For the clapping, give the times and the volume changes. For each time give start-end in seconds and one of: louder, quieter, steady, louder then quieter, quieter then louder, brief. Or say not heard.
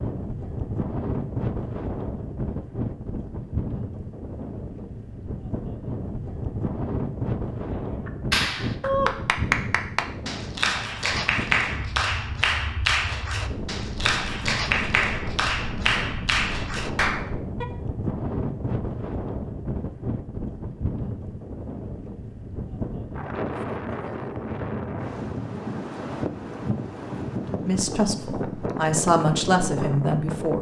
8.1-17.6 steady.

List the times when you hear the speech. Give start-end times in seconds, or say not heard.
27.6-30.5.